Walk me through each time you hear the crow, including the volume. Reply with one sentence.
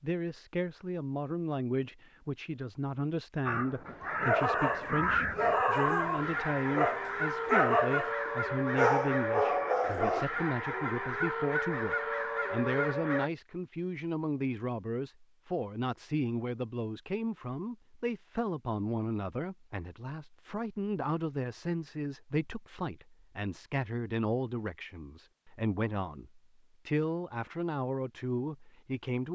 The crow can be heard from 3.5 to 13.3 s, at a steady volume.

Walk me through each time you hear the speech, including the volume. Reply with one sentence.
You can hear the speech from 0.0 to 29.2 s, at a steady volume.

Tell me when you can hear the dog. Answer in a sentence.
You can hear the dog from 4.2 to 10.2 s.